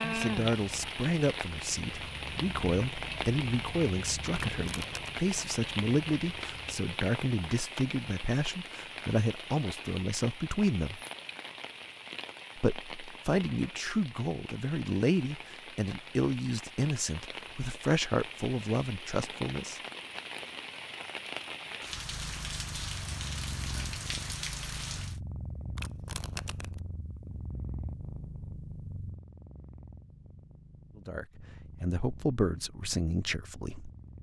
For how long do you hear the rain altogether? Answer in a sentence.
The rain can be heard for 25 seconds in total.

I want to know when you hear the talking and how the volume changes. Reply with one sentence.
You can hear the talking from 0.0 to 11.0 s, at a steady volume; from 12.6 to 19.8 s, at a steady volume; and briefly from 30.9 to 33.9 s.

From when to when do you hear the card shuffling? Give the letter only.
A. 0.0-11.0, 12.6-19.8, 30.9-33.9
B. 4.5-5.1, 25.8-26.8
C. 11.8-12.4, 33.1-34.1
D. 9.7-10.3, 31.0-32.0
B.